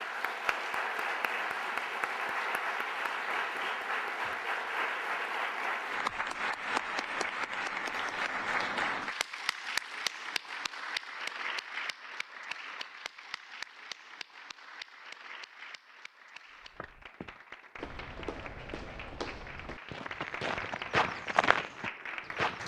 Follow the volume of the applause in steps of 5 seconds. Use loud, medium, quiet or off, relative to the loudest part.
loud, loud, medium, quiet, medium.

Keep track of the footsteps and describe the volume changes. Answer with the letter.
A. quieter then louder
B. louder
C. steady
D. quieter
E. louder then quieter
B.